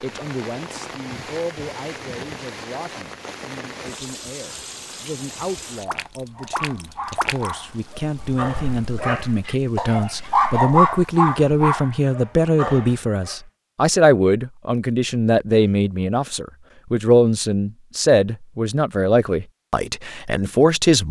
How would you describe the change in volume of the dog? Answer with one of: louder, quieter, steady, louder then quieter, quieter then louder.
louder then quieter.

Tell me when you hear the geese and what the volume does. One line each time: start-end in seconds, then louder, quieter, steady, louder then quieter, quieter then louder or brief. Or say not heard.
not heard.